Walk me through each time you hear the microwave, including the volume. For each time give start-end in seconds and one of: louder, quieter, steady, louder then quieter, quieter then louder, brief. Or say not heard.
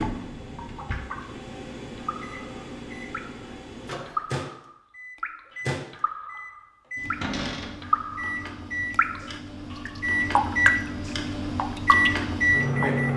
0.0-13.1 louder.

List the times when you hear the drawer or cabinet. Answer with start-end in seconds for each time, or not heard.
0.3-1.2, 7.2-7.8.